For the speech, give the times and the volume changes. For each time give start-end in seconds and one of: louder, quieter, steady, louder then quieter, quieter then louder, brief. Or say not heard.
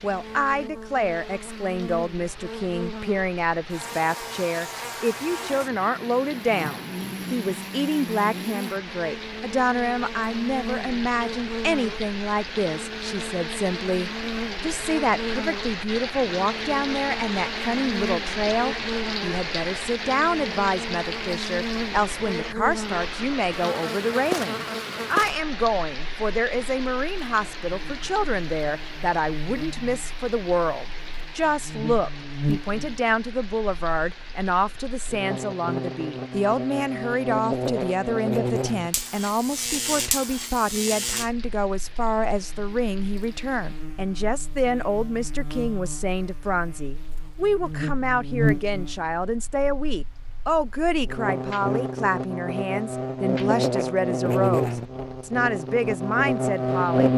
0.0-57.1 steady.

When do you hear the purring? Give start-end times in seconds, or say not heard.
not heard.